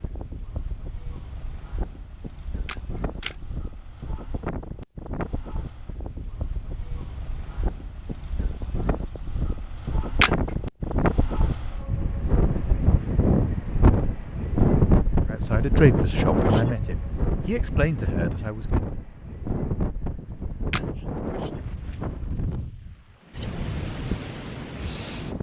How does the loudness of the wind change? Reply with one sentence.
The volume of the wind goes up, then down.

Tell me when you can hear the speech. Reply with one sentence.
You can hear the speech from 15.3 to 18.9 s.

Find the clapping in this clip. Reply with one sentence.
The clapping can't be heard in this clip.